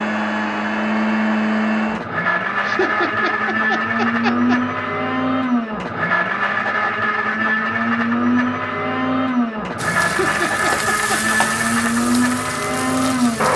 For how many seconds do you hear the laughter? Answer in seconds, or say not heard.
3 s.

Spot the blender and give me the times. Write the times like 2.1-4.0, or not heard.
0.0-13.5.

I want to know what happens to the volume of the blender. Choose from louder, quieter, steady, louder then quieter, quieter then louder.
steady.